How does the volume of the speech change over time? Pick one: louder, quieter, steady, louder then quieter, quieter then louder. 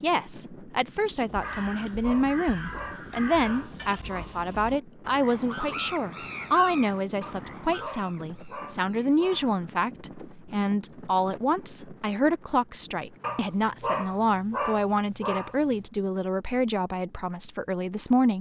steady.